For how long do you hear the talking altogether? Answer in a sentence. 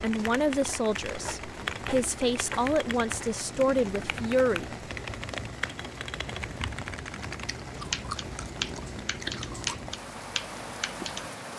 The talking can be heard for 5 seconds in total.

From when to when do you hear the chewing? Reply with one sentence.
You can hear the chewing from 7.5 to 9.9 s.